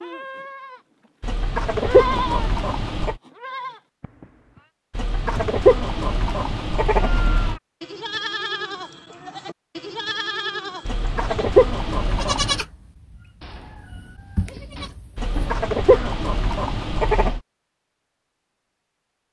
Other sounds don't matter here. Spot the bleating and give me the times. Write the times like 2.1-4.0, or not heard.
0.0-0.8, 1.7-2.5, 3.2-4.7, 7.0-16.1.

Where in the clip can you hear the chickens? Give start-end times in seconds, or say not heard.
1.2-3.1, 4.9-7.6, 10.8-12.7, 15.2-17.4.